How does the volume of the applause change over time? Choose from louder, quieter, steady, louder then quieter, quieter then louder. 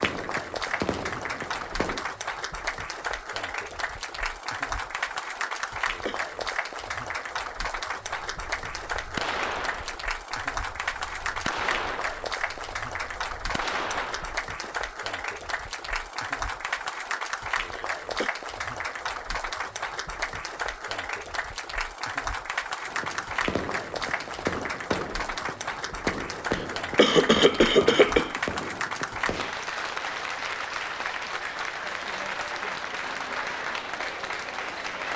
steady.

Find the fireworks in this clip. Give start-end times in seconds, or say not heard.
0.0-2.1, 8.3-14.7, 22.9-29.6.